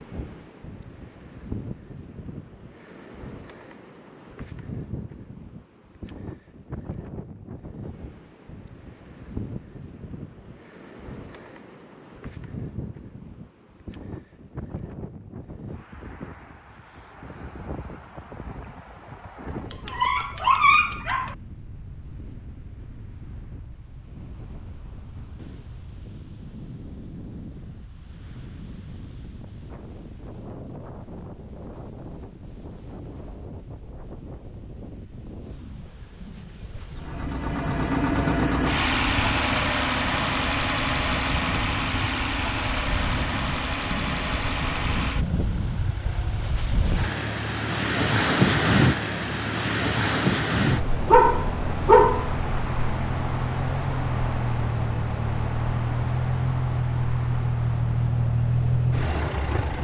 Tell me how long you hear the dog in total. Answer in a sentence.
You can hear the dog for 3 seconds altogether.